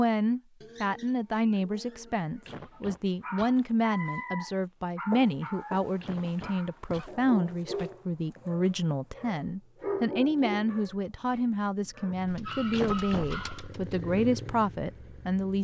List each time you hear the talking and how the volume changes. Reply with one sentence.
The talking can be heard from 0.0 to 15.5 s, at a steady volume.